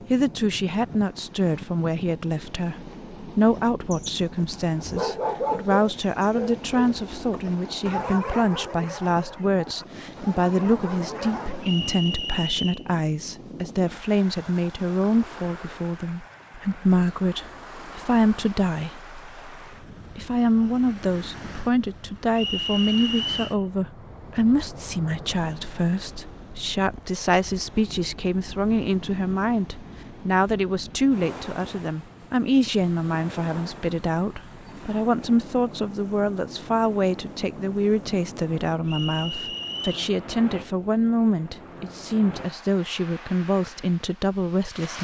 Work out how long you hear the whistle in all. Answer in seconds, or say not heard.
4 s.